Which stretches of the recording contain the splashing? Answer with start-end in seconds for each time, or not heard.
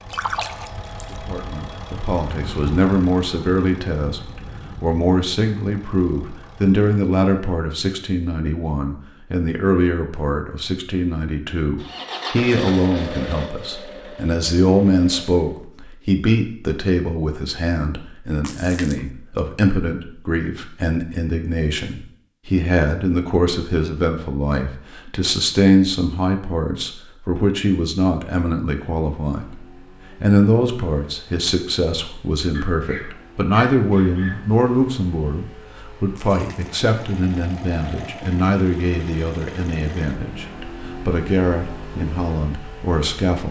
0.1-1.2, 18.4-19.0, 36.1-36.8.